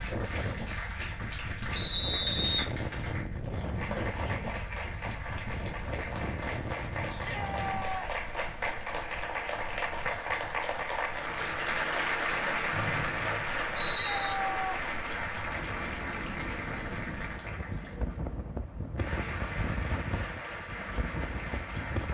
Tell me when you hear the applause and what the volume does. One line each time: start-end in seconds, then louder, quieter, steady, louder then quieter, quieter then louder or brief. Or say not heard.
0.0-22.0 louder then quieter.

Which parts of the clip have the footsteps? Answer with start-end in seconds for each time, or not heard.
not heard.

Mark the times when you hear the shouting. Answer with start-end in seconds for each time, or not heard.
7.0-8.3, 13.8-14.8.